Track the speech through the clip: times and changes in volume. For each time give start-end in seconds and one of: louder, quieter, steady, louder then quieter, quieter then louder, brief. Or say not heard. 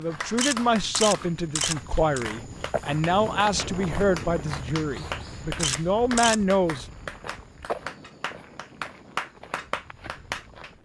0.0-6.8 steady.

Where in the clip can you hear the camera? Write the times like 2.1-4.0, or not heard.
0.3-2.2, 5.5-6.4.